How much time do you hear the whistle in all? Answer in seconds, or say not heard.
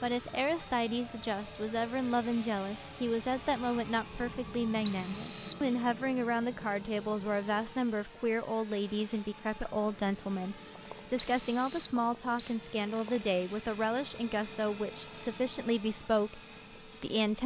2 s.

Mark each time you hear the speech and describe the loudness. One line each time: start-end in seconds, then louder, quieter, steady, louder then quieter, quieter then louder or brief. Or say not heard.
0.0-17.4 steady.